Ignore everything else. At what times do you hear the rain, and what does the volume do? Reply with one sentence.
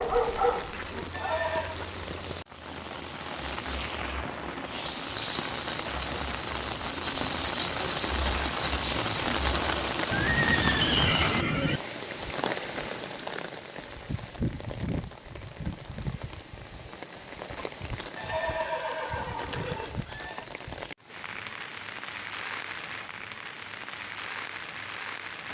You can hear the rain from 0.0 to 25.4 s, getting louder then quieter.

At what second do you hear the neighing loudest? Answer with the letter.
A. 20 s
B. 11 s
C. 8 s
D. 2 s
B.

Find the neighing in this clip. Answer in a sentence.
You can hear the neighing from 1.1 to 1.8 s, from 10.1 to 11.8 s and from 18.1 to 20.4 s.